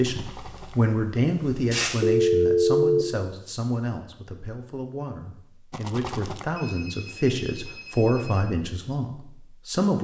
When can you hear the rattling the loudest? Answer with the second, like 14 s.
6 s.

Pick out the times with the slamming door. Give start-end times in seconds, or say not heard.
not heard.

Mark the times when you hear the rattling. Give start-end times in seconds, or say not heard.
0.1-0.8, 5.7-6.5.